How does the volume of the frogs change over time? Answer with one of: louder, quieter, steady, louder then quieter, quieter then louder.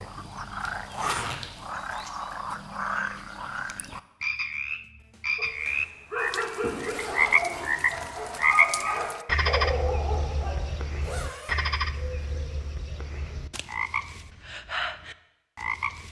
louder then quieter.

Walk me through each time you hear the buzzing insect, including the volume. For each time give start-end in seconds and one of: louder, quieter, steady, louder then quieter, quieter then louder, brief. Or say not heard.
not heard.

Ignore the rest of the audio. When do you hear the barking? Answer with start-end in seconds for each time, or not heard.
5.3-11.2.